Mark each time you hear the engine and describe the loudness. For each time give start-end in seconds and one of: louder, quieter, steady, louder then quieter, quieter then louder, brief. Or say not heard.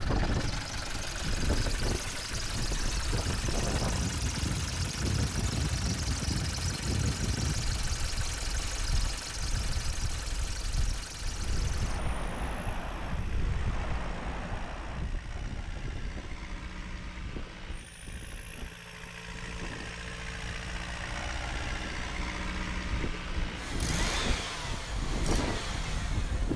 0.0-26.5 quieter then louder.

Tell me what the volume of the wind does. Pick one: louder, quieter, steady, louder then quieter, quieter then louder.
quieter then louder.